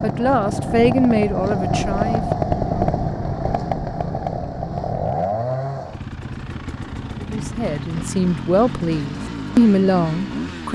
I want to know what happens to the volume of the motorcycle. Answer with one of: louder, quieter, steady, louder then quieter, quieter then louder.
quieter.